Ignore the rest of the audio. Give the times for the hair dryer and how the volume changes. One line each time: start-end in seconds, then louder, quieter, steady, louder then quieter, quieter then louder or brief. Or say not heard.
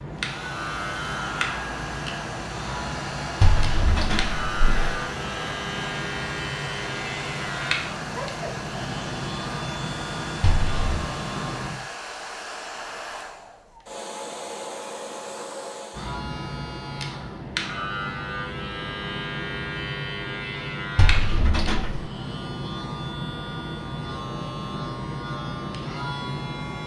0.0-16.2 steady.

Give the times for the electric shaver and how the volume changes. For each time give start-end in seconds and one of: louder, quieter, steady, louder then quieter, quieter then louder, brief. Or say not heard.
0.0-11.7 steady
15.9-26.8 steady.